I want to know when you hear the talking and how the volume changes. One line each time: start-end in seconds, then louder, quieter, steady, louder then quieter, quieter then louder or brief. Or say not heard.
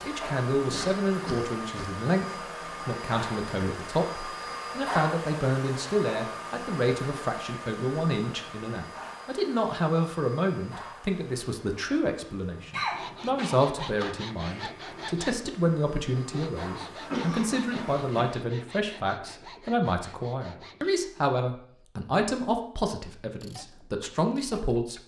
0.0-25.0 steady.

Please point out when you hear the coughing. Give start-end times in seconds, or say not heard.
0.6-1.9, 12.7-14.7, 17.0-18.3.